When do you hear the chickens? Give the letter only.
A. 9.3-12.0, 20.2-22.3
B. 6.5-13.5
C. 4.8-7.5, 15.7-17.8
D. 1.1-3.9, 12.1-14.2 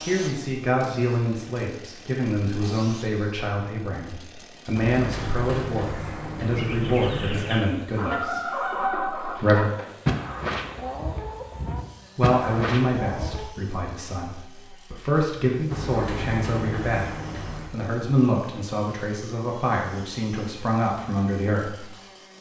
B.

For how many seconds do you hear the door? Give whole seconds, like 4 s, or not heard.
5 s.